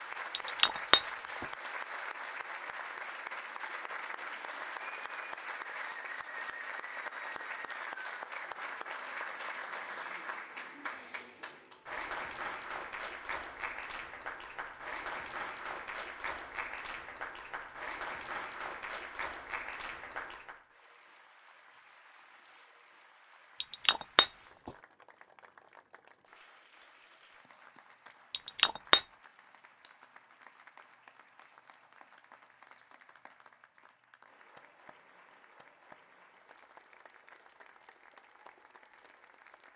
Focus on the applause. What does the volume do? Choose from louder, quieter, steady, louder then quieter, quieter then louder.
quieter.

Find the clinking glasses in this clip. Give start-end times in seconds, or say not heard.
0.3-1.4, 23.6-24.7, 28.3-29.0.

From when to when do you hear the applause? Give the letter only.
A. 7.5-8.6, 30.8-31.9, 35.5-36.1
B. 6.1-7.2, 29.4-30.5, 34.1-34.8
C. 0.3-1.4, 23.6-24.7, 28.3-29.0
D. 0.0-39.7
D.